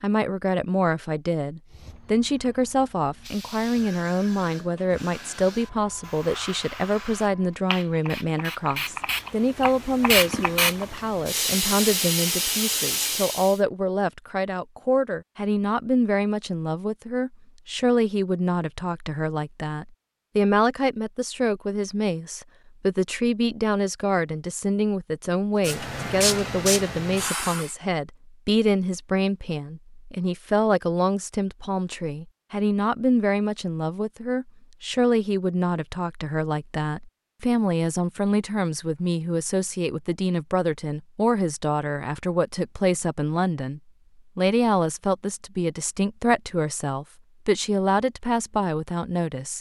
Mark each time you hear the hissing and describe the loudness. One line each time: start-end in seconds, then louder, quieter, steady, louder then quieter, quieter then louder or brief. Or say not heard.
1.7-13.6 louder
25.6-27.8 brief.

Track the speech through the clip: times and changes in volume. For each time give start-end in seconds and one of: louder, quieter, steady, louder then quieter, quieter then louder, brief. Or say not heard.
0.0-49.5 steady.